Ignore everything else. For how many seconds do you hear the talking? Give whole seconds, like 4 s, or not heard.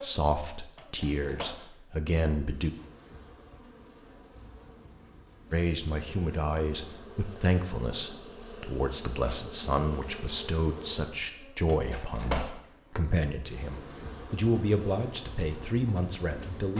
14 s.